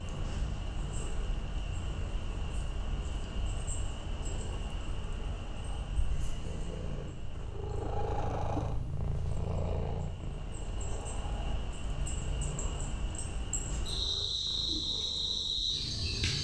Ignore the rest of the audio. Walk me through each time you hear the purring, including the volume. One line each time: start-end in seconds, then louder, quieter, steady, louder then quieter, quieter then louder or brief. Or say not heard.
0.0-16.3 louder then quieter.